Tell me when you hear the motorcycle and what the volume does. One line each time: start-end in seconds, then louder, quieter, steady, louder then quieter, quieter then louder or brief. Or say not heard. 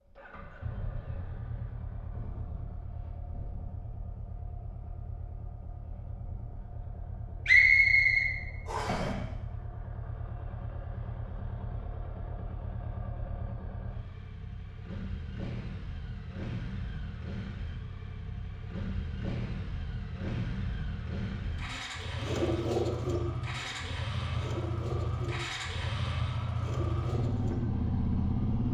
0.0-28.6 louder.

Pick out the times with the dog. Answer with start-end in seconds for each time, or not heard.
not heard.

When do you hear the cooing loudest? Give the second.
23 s.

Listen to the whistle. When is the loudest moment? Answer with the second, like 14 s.
8 s.